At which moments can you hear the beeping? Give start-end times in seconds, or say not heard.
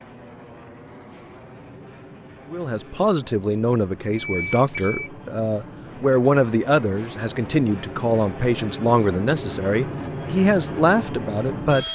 4.1-5.1.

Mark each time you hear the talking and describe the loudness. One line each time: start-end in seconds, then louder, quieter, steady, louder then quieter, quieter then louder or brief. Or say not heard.
2.5-11.9 steady.